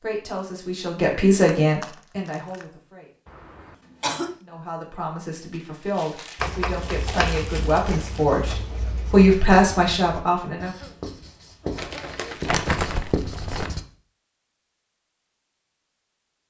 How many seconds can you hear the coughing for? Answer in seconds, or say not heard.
3 s.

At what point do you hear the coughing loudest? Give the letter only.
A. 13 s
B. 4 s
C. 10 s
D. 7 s
B.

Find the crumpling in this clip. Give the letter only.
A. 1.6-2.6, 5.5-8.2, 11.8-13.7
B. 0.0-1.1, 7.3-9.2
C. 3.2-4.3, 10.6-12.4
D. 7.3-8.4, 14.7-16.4
A.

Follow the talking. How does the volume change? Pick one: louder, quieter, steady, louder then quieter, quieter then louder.
quieter then louder.